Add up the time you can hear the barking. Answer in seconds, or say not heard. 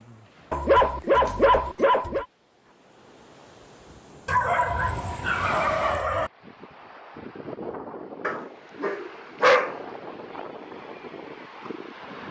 5 s.